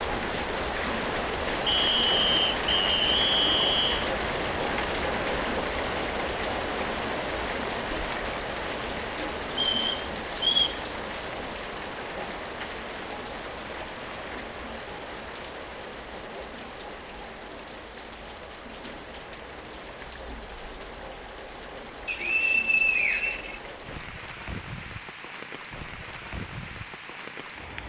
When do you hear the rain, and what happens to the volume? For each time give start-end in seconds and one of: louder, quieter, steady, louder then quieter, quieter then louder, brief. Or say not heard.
0.0-27.8 quieter.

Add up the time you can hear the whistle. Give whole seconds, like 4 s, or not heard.
6 s.